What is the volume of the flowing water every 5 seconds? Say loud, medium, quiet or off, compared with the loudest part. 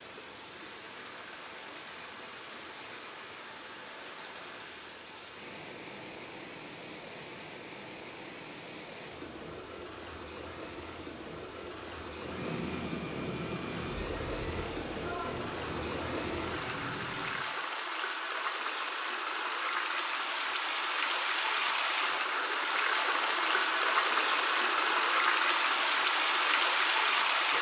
quiet, quiet, quiet, medium, loud, loud.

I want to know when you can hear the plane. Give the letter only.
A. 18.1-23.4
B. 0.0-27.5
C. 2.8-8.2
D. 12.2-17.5
D.